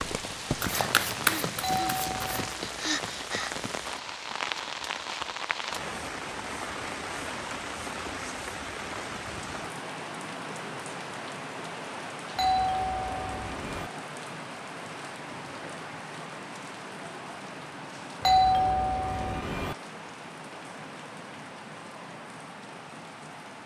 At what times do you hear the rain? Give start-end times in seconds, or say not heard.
0.0-23.6.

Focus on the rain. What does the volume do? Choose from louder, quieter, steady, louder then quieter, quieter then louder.
quieter.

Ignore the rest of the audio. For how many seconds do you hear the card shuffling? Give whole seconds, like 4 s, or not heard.
2 s.